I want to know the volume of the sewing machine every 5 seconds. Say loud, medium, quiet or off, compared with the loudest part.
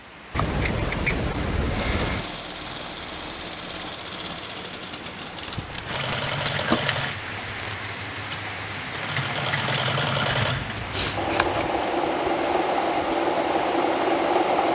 medium, medium, loud.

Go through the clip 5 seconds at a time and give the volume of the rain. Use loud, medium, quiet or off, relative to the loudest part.
medium, loud, loud.